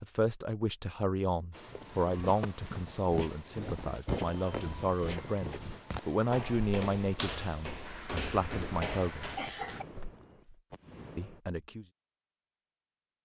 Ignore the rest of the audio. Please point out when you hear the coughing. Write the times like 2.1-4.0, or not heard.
7.8-9.8.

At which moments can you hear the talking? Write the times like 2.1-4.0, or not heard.
0.0-9.4, 11.2-11.8.